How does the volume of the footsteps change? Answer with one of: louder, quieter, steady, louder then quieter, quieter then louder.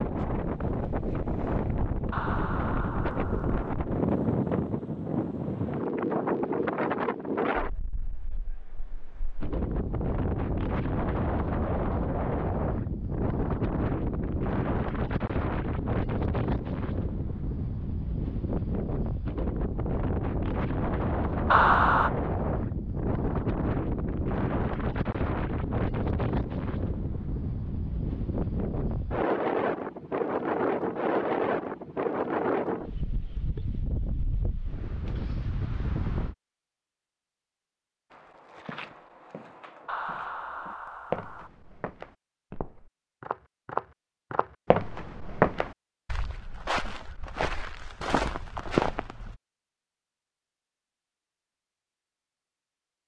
louder.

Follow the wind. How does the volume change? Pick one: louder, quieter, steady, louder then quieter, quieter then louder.
steady.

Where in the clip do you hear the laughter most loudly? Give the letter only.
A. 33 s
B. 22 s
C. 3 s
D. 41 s
B.